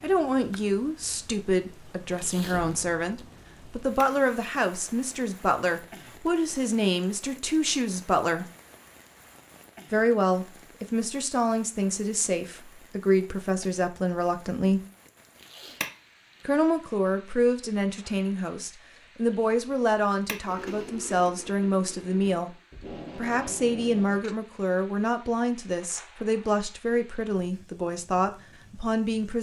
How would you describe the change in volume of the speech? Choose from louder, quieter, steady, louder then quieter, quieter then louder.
steady.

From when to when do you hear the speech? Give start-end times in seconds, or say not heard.
0.0-8.5, 9.9-14.8, 16.4-22.6, 23.1-29.3.